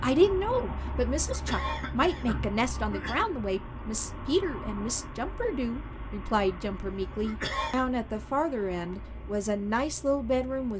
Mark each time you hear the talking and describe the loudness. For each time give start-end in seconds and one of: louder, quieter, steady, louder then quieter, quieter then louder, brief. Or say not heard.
0.0-10.7 steady.